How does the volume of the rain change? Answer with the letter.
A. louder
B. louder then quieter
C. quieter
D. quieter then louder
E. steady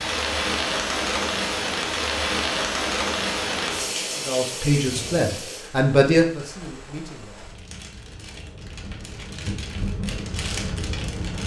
D.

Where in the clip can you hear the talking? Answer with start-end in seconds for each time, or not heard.
4.2-7.5.